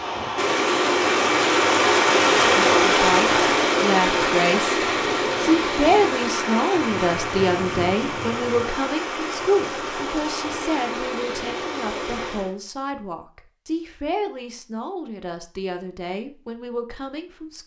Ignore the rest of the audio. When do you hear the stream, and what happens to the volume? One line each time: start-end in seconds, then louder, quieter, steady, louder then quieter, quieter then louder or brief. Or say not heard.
0.0-12.6 quieter.